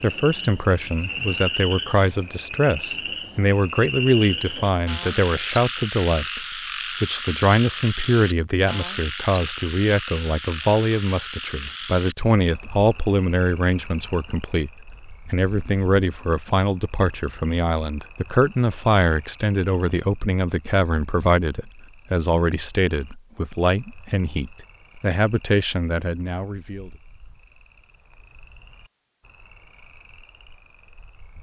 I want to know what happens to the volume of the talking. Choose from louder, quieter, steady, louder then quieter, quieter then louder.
steady.